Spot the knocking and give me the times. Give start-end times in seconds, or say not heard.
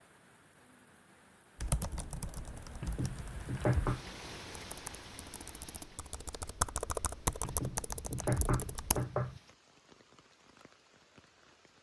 2.8-4.0, 7.4-9.4.